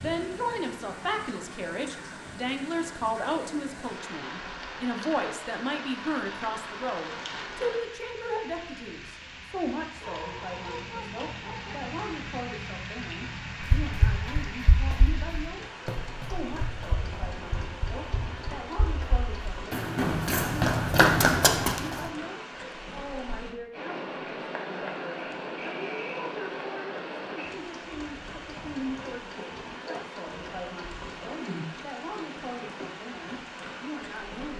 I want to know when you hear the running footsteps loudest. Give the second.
21 s.